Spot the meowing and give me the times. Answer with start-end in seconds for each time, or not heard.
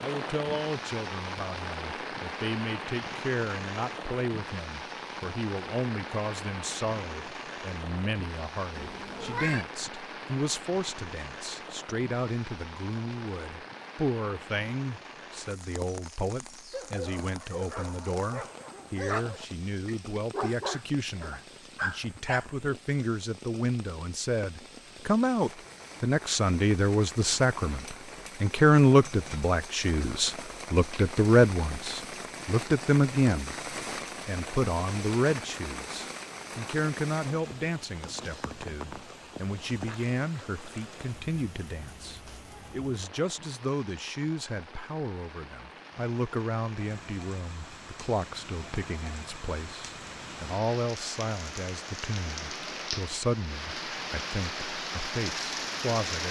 8.8-9.7.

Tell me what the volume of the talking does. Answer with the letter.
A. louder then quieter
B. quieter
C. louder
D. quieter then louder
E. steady
A.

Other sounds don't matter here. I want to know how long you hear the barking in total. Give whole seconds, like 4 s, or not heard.
6 s.